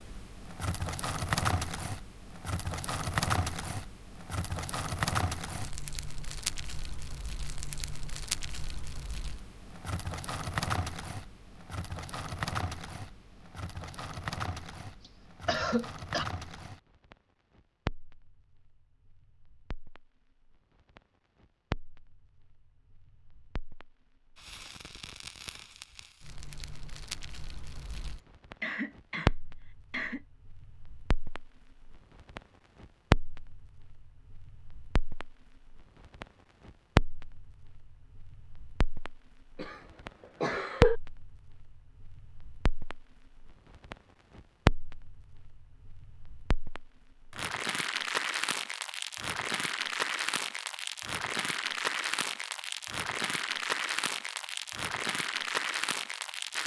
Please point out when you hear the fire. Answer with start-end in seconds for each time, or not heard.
0.0-56.6.